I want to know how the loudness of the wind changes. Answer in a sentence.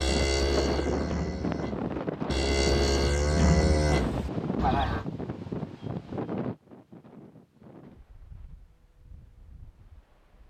The loudness of the wind goes down.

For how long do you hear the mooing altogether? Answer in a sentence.
The mooing can be heard for 5 seconds in total.